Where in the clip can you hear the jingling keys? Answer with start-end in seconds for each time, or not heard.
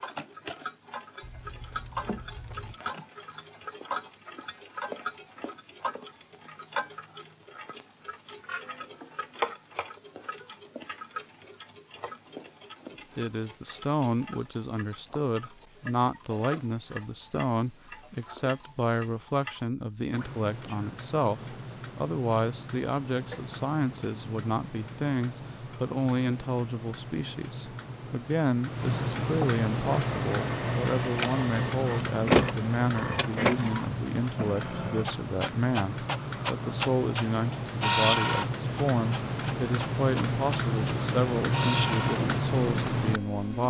1.2-2.8.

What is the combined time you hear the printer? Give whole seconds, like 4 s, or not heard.
14 s.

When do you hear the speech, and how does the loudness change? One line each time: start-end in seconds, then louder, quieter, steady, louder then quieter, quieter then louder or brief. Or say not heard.
13.2-43.6 steady.